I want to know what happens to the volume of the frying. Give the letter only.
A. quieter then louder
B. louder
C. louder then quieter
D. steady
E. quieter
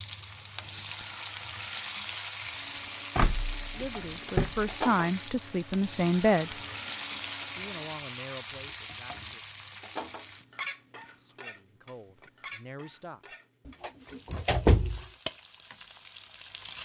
E.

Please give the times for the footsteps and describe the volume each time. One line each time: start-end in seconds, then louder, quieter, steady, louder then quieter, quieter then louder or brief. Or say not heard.
not heard.